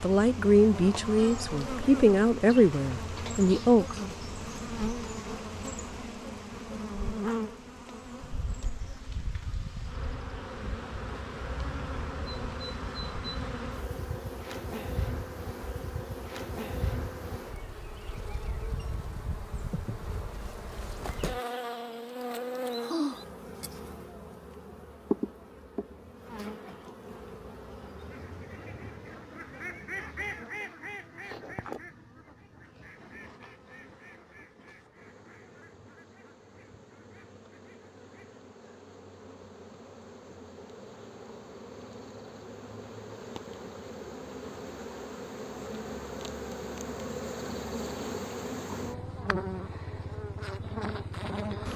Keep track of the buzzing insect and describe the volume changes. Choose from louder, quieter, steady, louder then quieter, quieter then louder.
quieter then louder.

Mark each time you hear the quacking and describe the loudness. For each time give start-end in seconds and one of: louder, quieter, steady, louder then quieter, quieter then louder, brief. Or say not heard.
27.9-38.5 quieter.